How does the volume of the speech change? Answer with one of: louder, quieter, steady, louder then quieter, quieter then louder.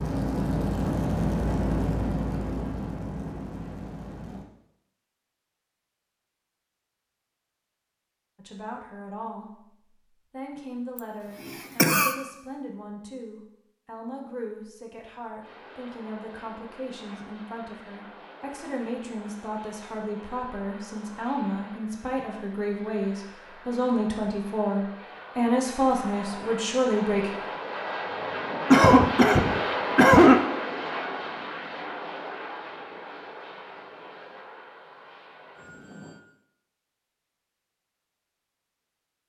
louder.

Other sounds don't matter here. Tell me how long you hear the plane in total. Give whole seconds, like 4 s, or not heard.
25 s.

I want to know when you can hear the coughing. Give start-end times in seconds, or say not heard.
10.9-12.2, 28.7-30.4.